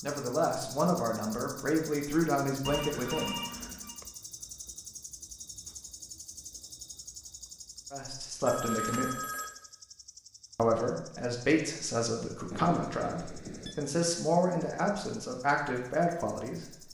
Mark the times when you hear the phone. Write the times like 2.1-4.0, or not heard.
2.6-4.0, 8.4-9.5, 12.5-13.8.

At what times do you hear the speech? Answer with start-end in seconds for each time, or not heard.
0.0-3.4, 7.9-9.1, 10.6-16.8.